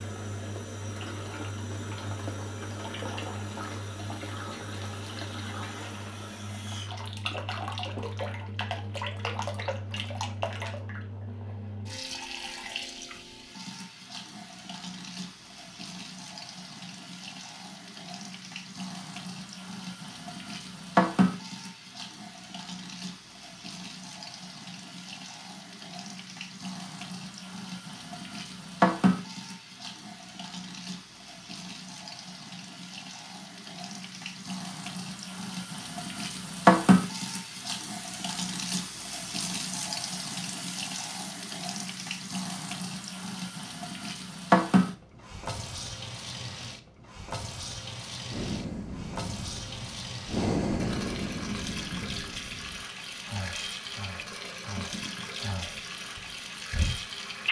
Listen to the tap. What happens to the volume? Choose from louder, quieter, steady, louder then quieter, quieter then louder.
louder then quieter.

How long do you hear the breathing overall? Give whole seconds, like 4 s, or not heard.
9 s.